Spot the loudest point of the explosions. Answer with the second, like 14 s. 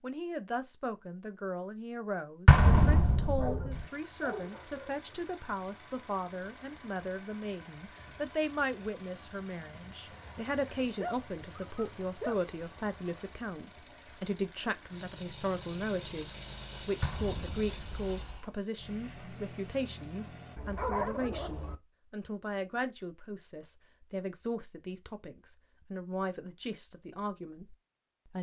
3 s.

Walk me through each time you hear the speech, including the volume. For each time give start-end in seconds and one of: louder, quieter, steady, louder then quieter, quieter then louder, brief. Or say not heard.
0.0-28.3 steady.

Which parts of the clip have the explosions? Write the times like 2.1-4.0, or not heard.
2.5-3.8, 17.0-18.4.